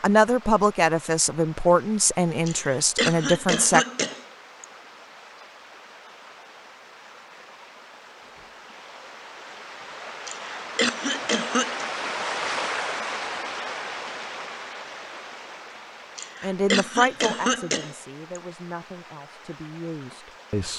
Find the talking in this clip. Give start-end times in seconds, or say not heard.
0.0-3.9, 16.4-20.7.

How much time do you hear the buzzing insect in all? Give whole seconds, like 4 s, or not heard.
not heard.